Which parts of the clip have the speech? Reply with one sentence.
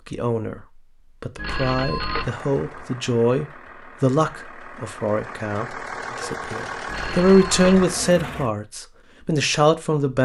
You can hear the speech from 0.1 to 10.1 s.